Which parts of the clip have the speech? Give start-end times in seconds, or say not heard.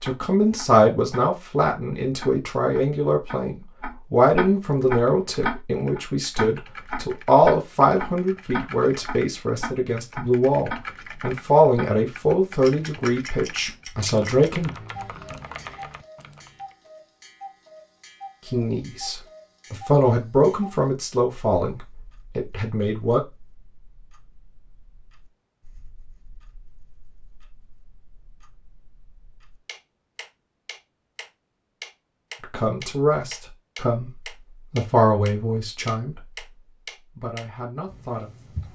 0.0-14.7, 18.4-23.2, 32.4-36.5, 37.1-38.3.